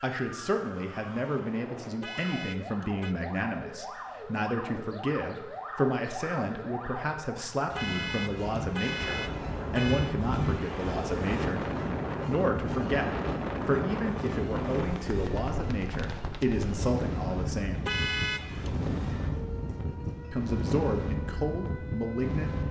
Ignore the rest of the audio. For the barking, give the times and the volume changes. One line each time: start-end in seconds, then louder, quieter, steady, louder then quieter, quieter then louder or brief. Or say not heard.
not heard.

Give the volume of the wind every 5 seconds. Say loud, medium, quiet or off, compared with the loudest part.
off, medium, loud, loud, loud.